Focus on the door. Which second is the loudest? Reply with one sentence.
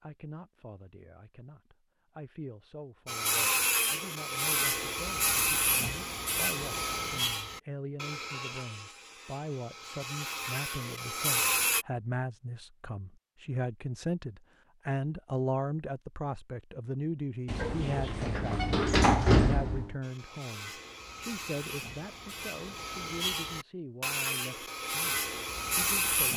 The volume of the door peaks at 19 seconds.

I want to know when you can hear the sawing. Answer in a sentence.
You can hear the sawing from 3.0 to 11.8 s and from 20.0 to 26.3 s.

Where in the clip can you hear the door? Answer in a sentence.
The door can be heard from 17.4 to 19.9 s.